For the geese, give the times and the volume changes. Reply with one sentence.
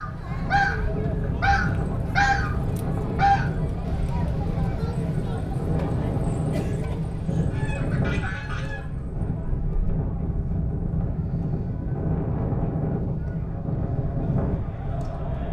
You can hear the geese from 0.0 to 8.8 s, getting quieter then louder.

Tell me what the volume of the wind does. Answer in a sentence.
The loudness of the wind stays about the same.